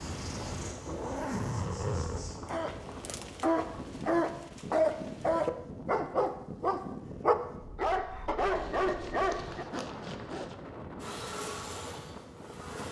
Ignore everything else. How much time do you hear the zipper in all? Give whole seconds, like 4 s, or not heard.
4 s.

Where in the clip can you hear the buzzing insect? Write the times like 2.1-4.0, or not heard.
0.0-2.4, 10.9-12.8.